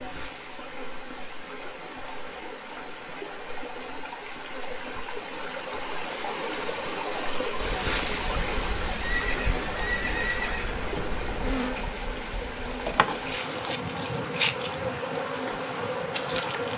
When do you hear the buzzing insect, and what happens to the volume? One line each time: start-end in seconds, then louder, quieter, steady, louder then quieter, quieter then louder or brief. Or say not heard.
0.0-16.7 louder.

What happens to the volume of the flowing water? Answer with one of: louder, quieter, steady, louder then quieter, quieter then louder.
louder then quieter.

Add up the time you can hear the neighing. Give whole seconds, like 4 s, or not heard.
2 s.